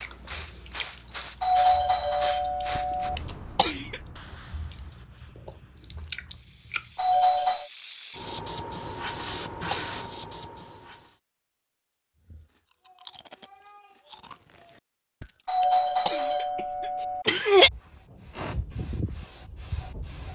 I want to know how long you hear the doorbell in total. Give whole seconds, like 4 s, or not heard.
4 s.